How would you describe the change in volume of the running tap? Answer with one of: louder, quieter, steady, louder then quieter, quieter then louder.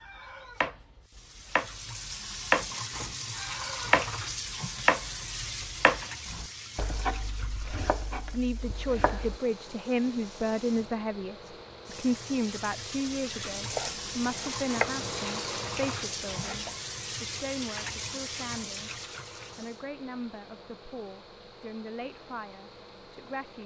quieter then louder.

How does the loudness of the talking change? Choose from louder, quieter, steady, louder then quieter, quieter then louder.
quieter.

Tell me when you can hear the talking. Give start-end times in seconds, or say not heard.
8.3-23.6.